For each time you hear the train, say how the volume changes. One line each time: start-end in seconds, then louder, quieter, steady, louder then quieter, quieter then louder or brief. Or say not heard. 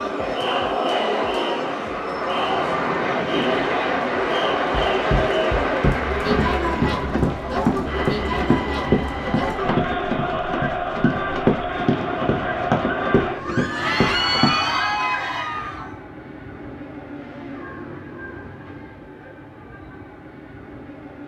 0.0-21.2 quieter.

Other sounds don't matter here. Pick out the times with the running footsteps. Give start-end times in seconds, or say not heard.
4.6-14.6.